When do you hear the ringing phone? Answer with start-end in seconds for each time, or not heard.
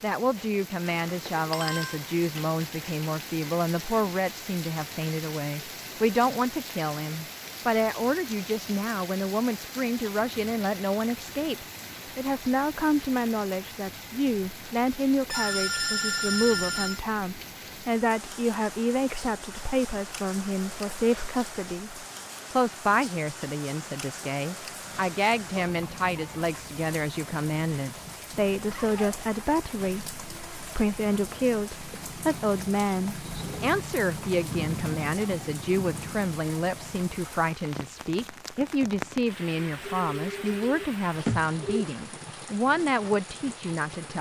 0.9-2.0, 15.3-17.0, 39.9-41.9.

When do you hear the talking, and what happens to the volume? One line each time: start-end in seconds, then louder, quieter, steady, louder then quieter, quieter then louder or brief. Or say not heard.
0.0-44.1 steady.